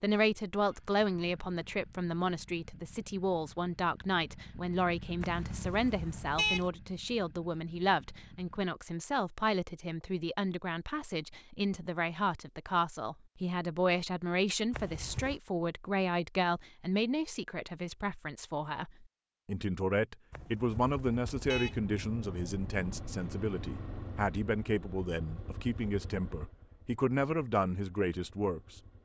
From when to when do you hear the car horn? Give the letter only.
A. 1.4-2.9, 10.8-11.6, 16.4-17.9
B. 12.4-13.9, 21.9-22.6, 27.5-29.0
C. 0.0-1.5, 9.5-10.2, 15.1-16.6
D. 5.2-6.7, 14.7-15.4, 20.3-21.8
D.